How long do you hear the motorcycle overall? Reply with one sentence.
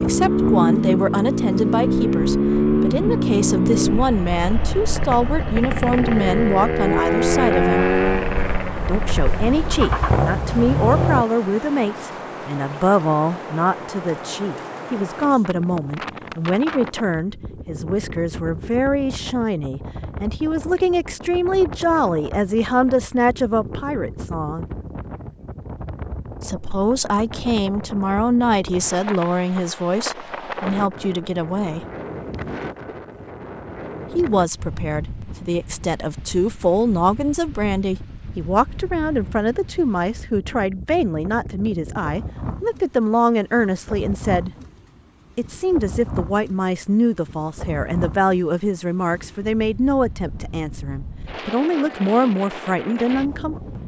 The motorcycle can be heard for 11 seconds in total.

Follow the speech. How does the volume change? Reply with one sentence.
The loudness of the speech stays about the same.